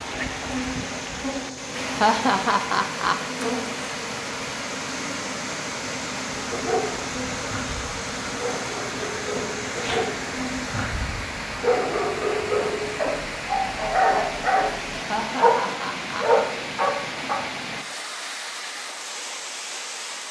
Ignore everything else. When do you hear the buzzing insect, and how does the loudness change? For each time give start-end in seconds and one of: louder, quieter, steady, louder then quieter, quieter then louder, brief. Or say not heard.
0.0-10.8 steady.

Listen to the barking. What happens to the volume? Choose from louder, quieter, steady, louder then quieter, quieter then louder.
louder.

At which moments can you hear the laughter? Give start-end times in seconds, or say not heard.
1.9-3.1, 15.1-16.2.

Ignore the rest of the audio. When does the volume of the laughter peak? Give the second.
2 s.